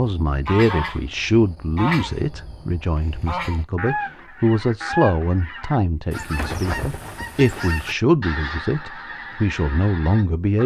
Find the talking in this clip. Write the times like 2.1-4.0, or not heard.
0.0-10.6.